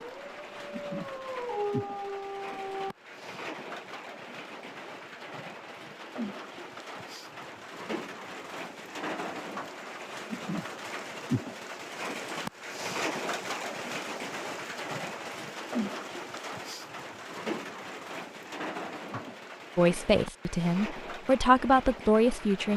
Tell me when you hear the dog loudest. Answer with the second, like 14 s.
2 s.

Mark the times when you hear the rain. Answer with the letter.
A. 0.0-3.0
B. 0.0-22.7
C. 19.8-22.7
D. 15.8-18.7
B.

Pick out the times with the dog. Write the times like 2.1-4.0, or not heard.
0.0-3.0.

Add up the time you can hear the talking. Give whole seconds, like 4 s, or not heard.
3 s.